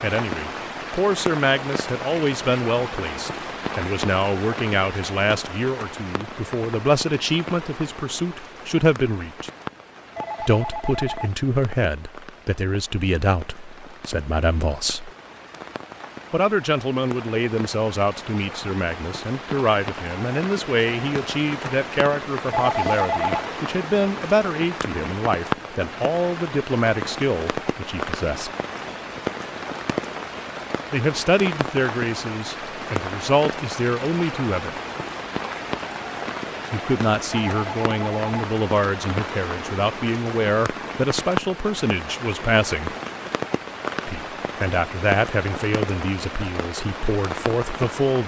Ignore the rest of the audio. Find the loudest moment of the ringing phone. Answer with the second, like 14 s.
23 s.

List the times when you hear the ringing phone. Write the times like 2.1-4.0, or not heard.
10.2-11.3, 22.5-23.5, 37.4-38.2.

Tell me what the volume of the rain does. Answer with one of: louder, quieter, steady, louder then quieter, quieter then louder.
quieter then louder.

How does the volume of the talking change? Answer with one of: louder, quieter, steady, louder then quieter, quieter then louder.
steady.